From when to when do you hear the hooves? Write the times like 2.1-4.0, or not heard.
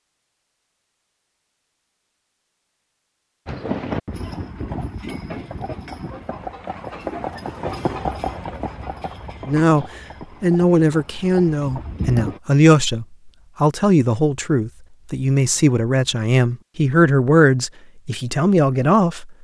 3.5-12.4.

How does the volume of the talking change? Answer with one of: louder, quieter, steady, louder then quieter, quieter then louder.
steady.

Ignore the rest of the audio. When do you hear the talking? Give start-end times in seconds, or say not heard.
9.4-19.3.